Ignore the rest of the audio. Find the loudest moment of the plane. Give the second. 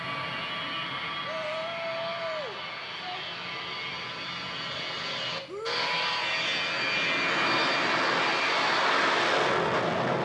9 s.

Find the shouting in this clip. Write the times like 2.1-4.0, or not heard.
1.2-3.2, 5.5-6.2.